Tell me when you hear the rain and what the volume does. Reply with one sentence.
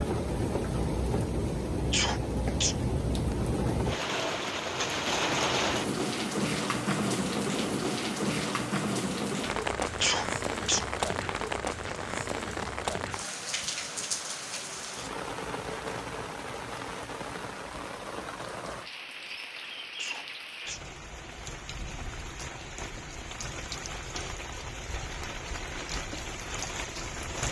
You can hear the rain from 0.0 to 27.4 s, getting quieter.